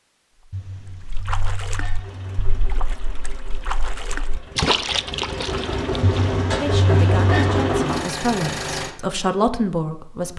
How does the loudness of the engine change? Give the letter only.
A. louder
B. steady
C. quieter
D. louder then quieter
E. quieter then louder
A.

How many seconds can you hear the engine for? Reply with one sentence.
You can hear the engine for 7 seconds altogether.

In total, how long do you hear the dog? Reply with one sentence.
You can hear the dog for 4 seconds altogether.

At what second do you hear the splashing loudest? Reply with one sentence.
The loudest moment of the splashing is at 5 seconds.